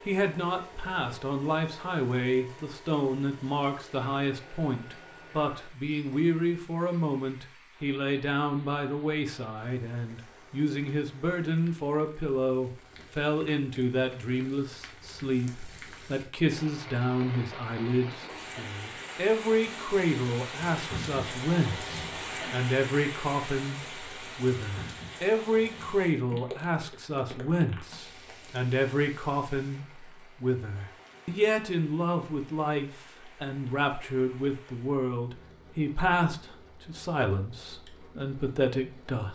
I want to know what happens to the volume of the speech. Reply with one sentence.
The loudness of the speech stays about the same.